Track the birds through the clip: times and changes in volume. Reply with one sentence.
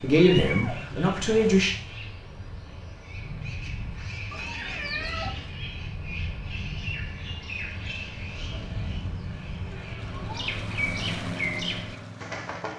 The birds can be heard from 0.0 to 12.7 s, getting louder.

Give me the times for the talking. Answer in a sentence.
You can hear the talking from 0.0 to 1.8 s.